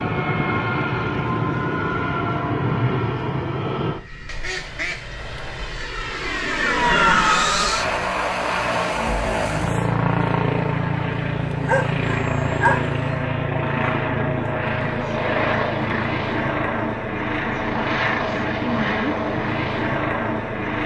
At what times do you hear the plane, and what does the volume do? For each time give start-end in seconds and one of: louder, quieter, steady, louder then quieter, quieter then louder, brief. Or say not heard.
0.0-20.8 steady.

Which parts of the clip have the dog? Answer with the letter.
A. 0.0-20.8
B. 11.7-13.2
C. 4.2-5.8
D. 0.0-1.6
B.